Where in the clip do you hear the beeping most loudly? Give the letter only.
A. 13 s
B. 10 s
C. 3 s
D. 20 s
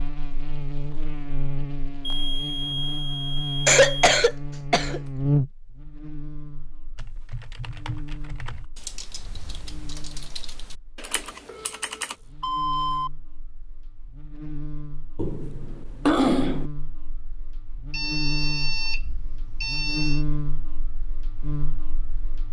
A.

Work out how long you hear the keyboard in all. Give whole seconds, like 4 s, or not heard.
5 s.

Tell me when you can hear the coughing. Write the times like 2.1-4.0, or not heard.
3.6-5.0, 15.2-16.7.